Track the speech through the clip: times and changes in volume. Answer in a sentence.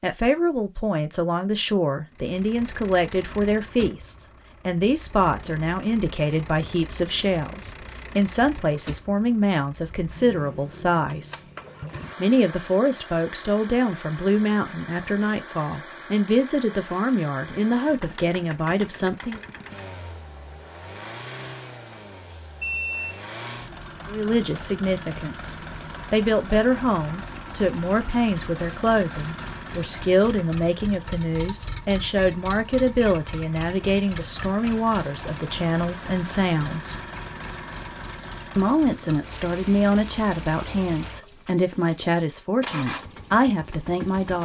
You can hear the speech from 0.0 to 11.4 s, at a steady volume; from 12.2 to 19.4 s, at a steady volume; from 24.1 to 37.0 s, at a steady volume; and from 38.5 to 44.4 s, at a steady volume.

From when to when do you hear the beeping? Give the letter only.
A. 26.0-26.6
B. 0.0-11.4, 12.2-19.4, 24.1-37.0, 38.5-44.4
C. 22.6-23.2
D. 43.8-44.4
C.